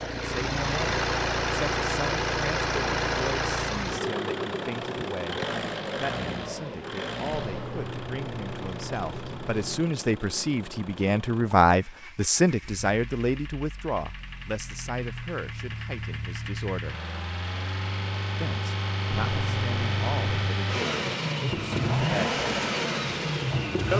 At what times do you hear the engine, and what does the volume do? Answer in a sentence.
The engine can be heard from 0.0 to 23.9 s, getting quieter then louder.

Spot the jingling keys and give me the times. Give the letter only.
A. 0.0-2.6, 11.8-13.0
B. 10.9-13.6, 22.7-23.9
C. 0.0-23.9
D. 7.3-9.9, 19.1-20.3
D.